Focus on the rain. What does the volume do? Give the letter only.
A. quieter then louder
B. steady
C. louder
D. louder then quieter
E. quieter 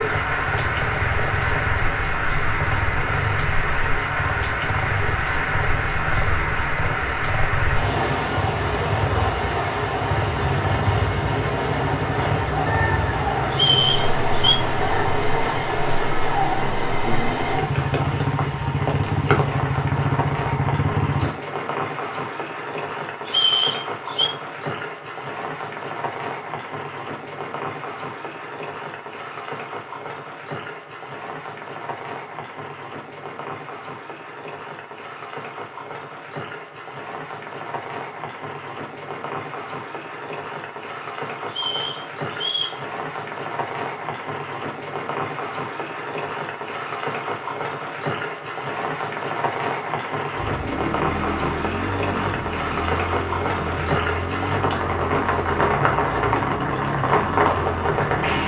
A.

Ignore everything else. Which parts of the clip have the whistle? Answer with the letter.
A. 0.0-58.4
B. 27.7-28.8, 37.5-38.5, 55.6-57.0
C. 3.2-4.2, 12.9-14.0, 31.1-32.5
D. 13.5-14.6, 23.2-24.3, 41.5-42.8
D.